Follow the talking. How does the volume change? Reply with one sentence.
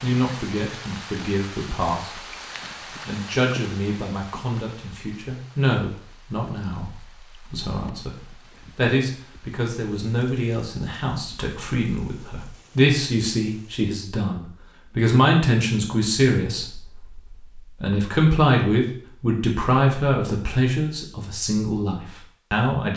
The loudness of the talking goes up.